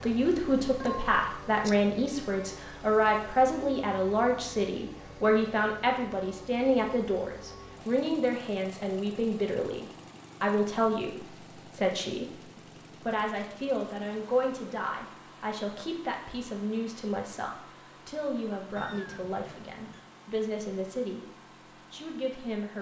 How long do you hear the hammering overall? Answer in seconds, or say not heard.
not heard.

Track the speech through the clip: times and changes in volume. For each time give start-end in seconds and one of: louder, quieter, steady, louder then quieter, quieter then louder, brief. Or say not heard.
0.0-22.7 quieter.